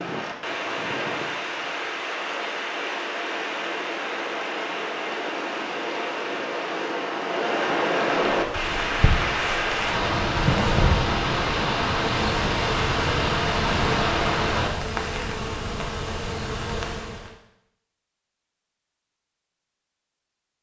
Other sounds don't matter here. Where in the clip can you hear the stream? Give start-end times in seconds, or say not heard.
0.0-14.7.